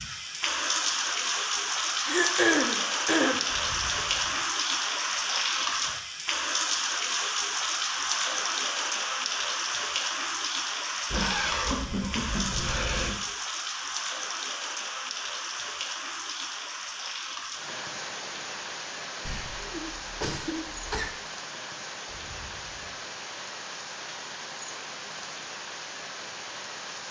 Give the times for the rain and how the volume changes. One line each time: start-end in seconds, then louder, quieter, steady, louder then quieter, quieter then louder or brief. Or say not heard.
0.0-27.0 quieter.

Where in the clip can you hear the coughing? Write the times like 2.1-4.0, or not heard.
2.0-3.5, 11.1-13.1, 19.2-21.1.